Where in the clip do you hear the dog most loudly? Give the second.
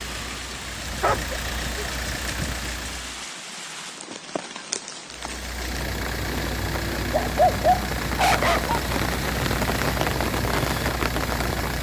8 s.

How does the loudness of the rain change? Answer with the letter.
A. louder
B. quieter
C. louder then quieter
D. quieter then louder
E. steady
A.